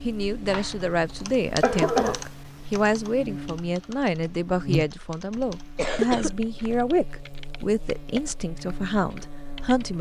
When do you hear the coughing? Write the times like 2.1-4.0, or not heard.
0.5-2.2, 5.3-6.8.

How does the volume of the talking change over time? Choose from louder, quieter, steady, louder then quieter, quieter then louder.
steady.